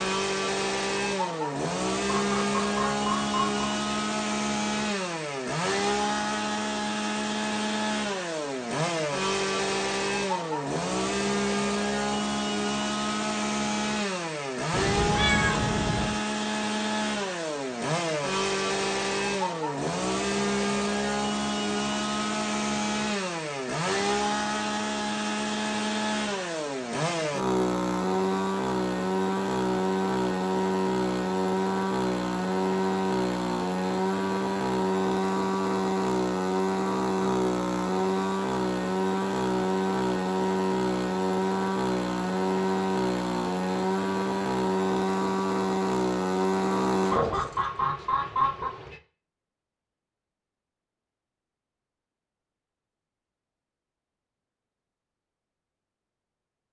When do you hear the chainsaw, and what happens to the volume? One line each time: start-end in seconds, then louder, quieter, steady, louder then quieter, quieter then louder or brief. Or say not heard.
0.0-47.6 steady.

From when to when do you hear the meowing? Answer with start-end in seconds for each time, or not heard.
14.7-16.2.